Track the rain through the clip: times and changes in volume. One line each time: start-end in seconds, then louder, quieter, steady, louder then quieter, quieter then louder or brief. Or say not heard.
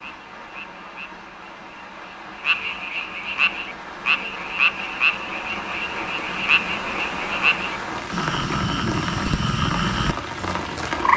0.0-11.1 louder.